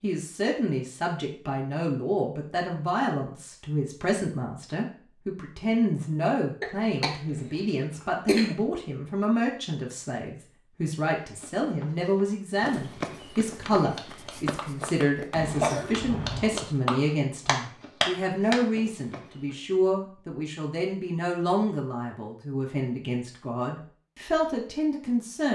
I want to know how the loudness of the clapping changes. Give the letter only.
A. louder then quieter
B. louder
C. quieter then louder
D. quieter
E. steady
B.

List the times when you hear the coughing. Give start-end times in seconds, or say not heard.
6.6-8.6, 15.3-16.6.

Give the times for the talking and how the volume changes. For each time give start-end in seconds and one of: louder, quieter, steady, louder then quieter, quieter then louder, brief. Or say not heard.
0.0-25.5 steady.